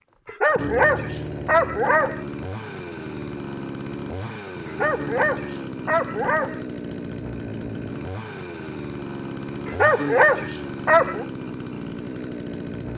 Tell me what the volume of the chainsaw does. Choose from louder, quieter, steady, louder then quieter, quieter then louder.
steady.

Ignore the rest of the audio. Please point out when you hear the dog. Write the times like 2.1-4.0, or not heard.
0.2-2.2, 4.7-6.6, 9.7-11.2.